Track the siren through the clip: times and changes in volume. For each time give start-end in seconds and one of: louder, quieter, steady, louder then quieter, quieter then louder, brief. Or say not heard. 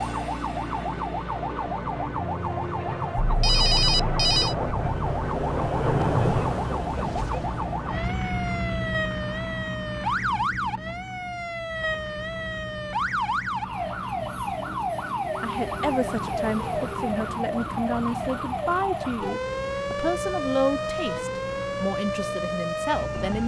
0.0-23.4 steady.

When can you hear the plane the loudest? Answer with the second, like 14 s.
6 s.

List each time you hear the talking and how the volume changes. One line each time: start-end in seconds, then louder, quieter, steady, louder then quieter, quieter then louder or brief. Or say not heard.
15.4-23.4 steady.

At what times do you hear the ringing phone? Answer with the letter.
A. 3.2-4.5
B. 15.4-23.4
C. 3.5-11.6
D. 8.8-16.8
A.